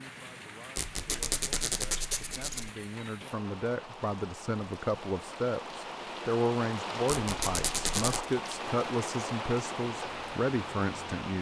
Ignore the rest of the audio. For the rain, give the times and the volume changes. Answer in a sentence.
You can hear the rain from 0.0 to 11.3 s, getting louder.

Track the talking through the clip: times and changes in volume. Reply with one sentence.
The talking can be heard from 0.0 to 11.3 s, getting louder.